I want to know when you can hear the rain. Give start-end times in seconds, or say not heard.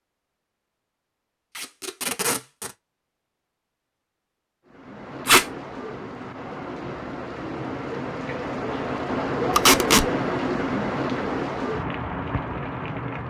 4.7-13.2.